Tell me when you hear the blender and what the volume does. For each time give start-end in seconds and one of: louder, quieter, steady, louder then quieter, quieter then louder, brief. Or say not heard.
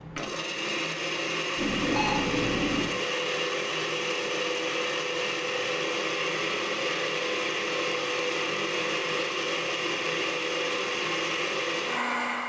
0.0-12.4 steady.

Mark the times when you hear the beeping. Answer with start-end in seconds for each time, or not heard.
1.6-3.0.